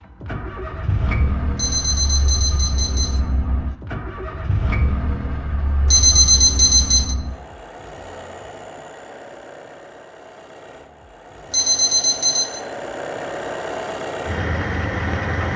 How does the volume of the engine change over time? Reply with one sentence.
The loudness of the engine goes down, then up.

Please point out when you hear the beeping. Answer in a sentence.
You can hear the beeping from 1.6 to 3.2 s, from 5.9 to 7.2 s and from 11.5 to 12.6 s.